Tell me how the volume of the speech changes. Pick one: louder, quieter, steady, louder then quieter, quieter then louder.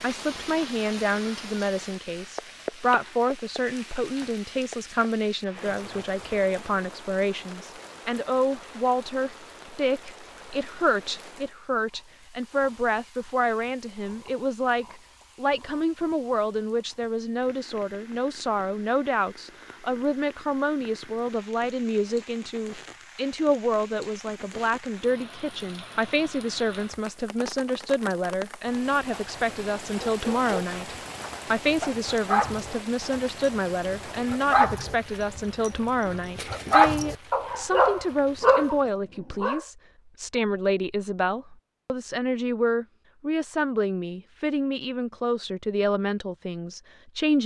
steady.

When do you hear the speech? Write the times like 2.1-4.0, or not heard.
0.0-47.4.